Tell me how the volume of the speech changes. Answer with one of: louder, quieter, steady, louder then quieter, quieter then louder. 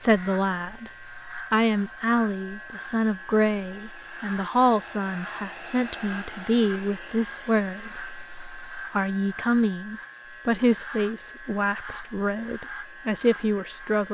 steady.